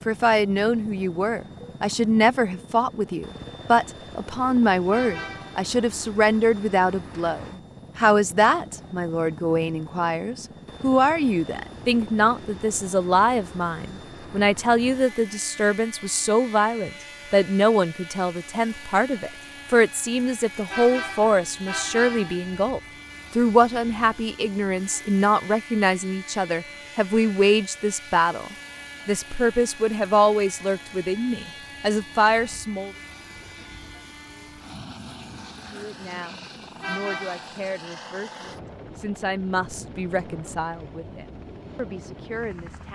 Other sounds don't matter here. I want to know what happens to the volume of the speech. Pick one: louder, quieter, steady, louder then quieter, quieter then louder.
quieter.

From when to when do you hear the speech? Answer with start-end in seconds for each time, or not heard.
0.1-32.9, 35.6-42.9.